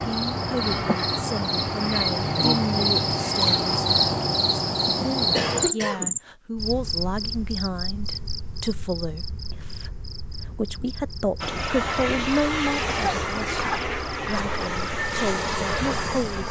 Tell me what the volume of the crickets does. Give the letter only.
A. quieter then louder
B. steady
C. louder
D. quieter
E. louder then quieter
D.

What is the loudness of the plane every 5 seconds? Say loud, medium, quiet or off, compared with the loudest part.
medium, off, loud, loud.